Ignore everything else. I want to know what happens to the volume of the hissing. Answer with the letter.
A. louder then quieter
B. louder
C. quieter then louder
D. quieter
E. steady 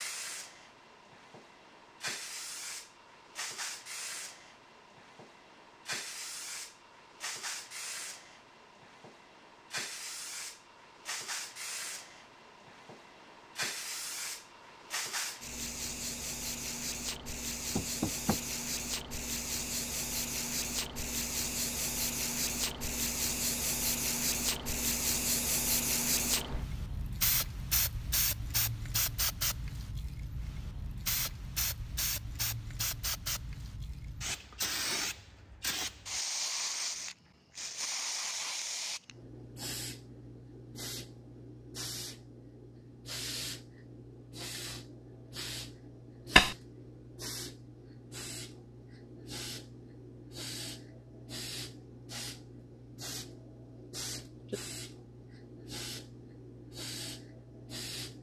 A.